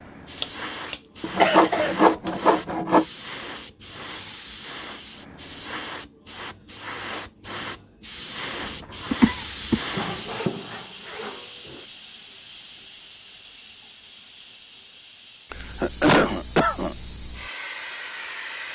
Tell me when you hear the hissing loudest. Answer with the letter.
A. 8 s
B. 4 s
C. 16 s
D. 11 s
D.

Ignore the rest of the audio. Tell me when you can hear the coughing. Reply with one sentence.
You can hear the coughing from 0.4 to 2.4 s, from 9.1 to 9.8 s and from 15.5 to 16.9 s.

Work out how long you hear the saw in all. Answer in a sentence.
You can hear the saw for 4 seconds altogether.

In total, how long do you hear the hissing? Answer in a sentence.
You can hear the hissing for 19 seconds altogether.